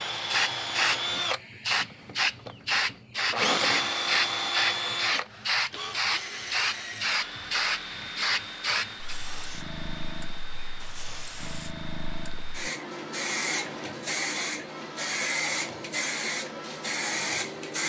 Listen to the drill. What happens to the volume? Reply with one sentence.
The loudness of the drill goes down.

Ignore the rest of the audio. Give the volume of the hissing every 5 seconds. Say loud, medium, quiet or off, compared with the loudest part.
loud, loud, medium, loud.